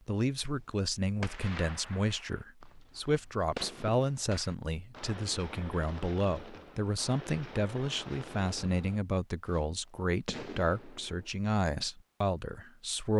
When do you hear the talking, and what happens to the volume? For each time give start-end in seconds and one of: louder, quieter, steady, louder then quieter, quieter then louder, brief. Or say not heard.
0.1-13.1 steady.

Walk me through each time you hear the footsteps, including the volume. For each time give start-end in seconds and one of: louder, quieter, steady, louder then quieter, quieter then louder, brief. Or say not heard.
not heard.